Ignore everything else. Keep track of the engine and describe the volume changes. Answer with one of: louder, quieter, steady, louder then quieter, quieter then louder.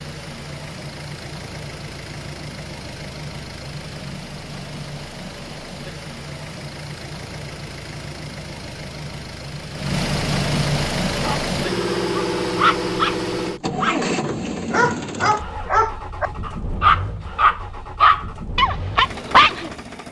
louder then quieter.